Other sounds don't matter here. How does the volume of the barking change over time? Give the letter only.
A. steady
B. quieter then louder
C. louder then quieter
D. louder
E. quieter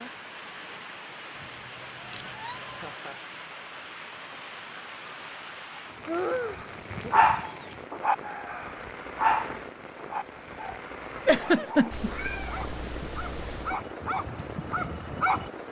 B.